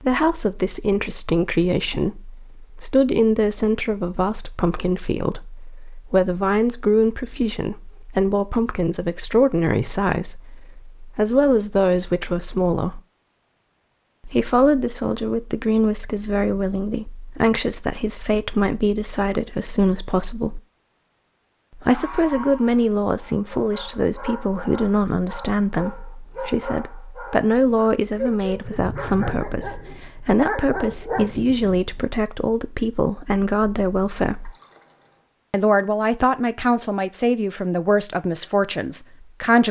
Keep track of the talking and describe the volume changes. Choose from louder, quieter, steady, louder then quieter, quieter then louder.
steady.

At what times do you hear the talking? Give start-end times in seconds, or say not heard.
0.0-13.0, 14.2-20.6, 21.8-34.5, 35.5-39.6.